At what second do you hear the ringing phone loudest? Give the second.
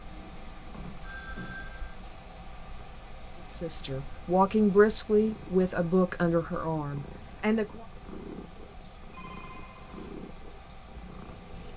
1 s.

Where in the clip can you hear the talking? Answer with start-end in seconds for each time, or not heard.
3.5-7.8.